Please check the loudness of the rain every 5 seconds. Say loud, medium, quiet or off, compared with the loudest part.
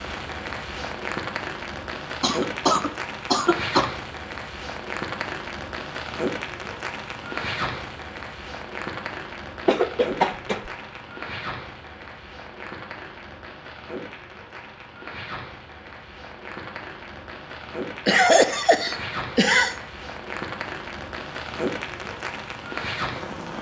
loud, loud, medium, medium, loud.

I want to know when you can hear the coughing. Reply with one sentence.
The coughing can be heard from 2.2 to 3.9 s, from 9.7 to 10.7 s and from 18.1 to 19.8 s.